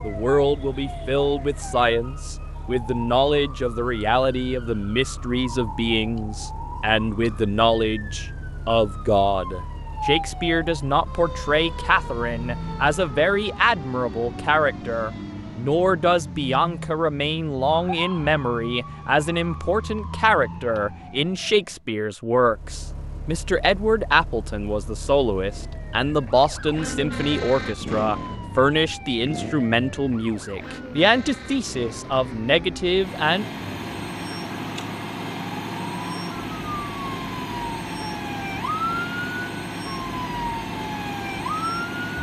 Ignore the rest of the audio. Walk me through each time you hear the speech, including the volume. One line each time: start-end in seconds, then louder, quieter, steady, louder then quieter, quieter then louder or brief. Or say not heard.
0.0-33.5 steady.